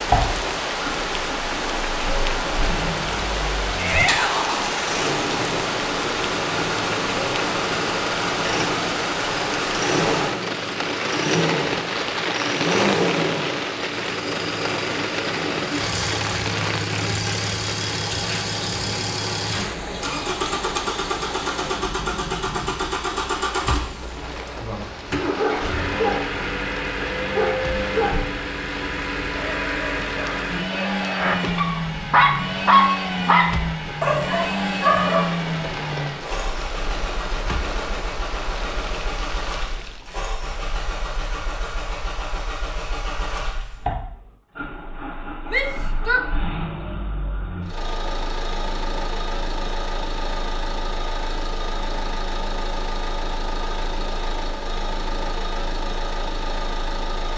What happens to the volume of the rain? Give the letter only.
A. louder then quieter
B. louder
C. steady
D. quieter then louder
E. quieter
E.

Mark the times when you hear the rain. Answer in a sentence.
The rain can be heard from 0.0 to 40.1 s.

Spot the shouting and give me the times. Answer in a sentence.
The shouting can be heard from 3.8 to 4.5 s and from 45.5 to 46.2 s.